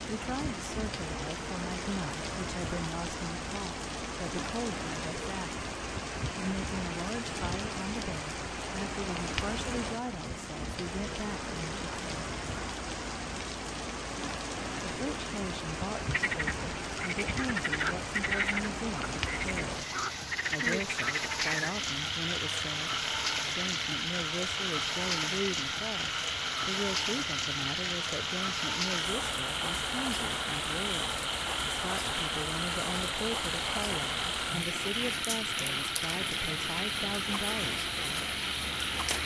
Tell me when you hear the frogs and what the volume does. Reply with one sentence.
You can hear the frogs from 16.1 to 39.2 s, at a steady volume.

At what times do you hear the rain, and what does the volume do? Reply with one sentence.
You can hear the rain from 0.0 to 39.2 s, at a steady volume.